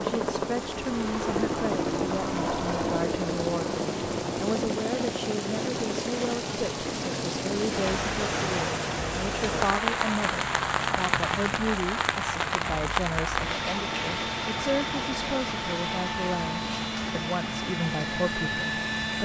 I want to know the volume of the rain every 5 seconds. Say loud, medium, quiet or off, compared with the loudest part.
medium, loud, loud, medium.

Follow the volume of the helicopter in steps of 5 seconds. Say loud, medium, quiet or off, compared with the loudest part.
loud, medium, medium, loud.